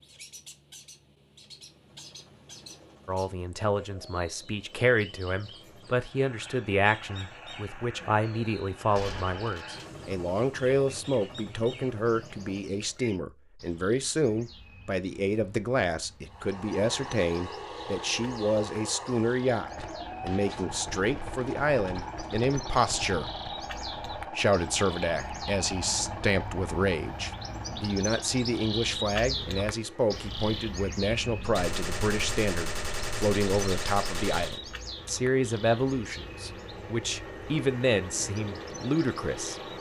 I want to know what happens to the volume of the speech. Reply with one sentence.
The volume of the speech stays about the same.